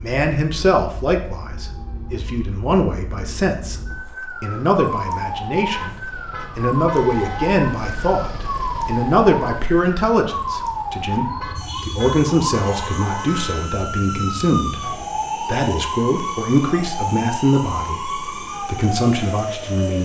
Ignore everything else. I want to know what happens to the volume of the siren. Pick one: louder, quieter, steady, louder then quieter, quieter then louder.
louder.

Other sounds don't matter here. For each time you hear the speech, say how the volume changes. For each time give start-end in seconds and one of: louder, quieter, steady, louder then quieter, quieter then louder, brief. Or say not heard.
0.0-19.9 steady.